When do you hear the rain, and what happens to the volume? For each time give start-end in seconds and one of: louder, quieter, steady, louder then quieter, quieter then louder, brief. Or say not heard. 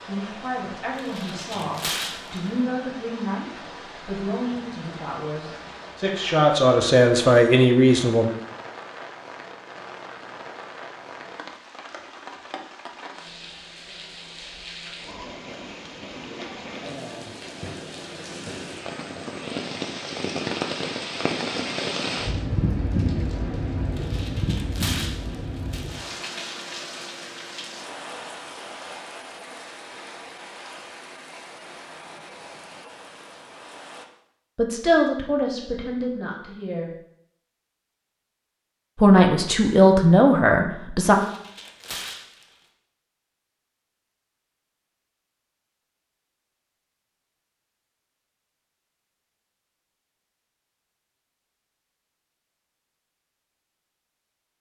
0.0-34.0 louder then quieter.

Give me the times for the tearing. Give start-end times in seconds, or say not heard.
0.9-2.5, 23.9-26.1, 41.0-42.5.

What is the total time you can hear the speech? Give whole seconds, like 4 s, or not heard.
13 s.